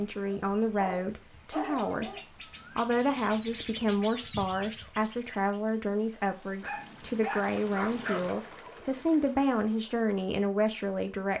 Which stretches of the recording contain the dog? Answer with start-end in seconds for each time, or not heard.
0.2-2.2, 6.6-8.3.